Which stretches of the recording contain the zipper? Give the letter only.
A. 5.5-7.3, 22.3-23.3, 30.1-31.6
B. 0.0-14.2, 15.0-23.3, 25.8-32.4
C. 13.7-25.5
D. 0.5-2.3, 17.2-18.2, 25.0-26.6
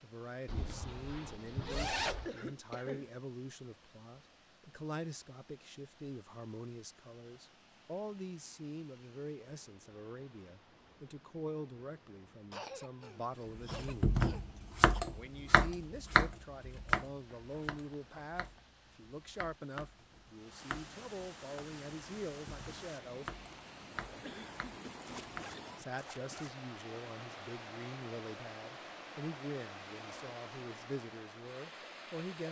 D.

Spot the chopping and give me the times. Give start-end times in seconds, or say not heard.
13.7-25.5.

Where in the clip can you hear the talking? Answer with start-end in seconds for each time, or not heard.
0.0-14.2, 15.0-23.3, 25.8-32.4.